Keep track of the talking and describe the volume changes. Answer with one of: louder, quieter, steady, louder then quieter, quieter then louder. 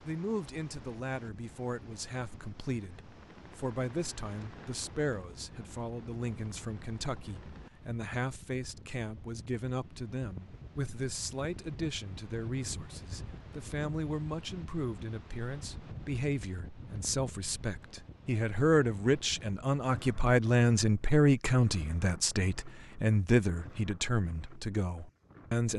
louder.